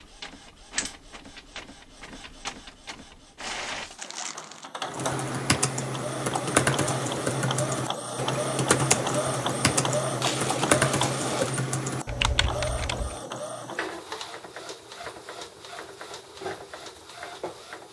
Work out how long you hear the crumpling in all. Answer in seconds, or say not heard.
2 s.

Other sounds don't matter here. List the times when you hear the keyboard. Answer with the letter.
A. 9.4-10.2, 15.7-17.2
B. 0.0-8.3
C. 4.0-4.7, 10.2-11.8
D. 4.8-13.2
D.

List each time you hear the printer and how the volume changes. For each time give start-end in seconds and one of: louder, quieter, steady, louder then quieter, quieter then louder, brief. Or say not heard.
0.0-17.8 louder then quieter.